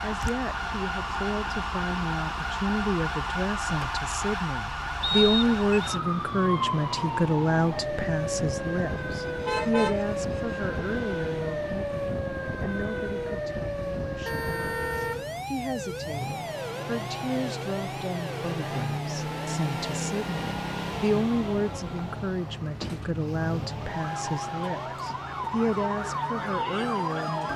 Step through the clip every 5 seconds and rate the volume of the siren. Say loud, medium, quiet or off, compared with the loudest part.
loud, loud, loud, medium, medium, loud.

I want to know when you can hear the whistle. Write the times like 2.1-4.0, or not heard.
5.0-6.0.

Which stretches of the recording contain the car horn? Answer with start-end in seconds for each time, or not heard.
9.2-10.6, 14.2-15.4.